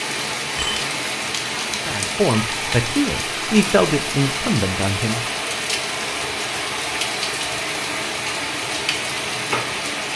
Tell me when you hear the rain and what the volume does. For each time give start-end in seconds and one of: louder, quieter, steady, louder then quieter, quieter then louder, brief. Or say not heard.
0.0-10.1 steady.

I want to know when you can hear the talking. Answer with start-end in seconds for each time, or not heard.
1.9-5.2.